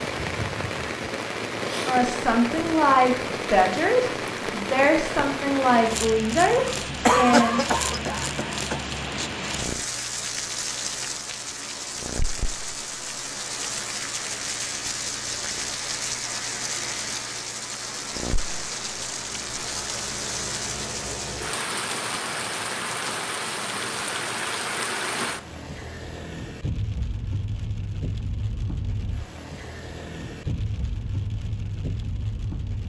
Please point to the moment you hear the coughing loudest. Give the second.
7 s.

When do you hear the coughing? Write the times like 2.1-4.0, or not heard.
6.7-8.8.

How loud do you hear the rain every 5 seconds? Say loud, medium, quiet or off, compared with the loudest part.
loud, loud, loud, loud, loud, medium, medium.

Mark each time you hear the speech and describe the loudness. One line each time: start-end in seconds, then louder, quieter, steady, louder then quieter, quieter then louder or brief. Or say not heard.
1.9-7.6 steady.